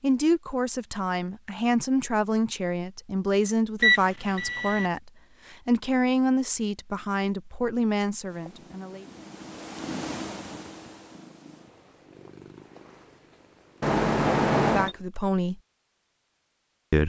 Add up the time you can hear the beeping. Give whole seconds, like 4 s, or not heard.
2 s.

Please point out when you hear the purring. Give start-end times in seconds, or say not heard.
8.2-15.1.